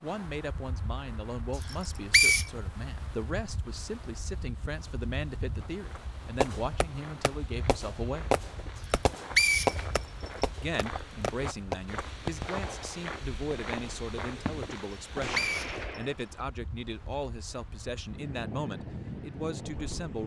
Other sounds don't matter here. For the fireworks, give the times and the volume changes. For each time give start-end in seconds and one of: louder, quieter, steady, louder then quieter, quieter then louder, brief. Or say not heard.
6.4-16.2 quieter.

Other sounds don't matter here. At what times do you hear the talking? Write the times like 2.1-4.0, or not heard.
0.0-8.3, 10.6-20.2.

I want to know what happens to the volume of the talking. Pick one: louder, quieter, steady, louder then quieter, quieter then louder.
steady.